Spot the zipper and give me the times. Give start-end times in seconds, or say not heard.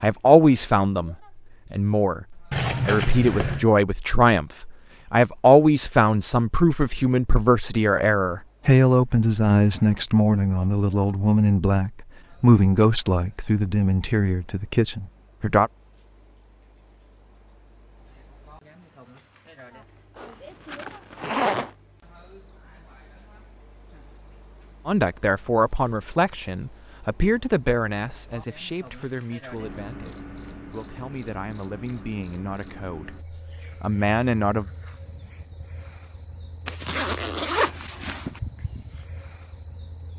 2.5-3.6, 20.1-21.7, 36.6-38.4.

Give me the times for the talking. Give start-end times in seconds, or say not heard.
0.0-15.7, 24.9-34.7.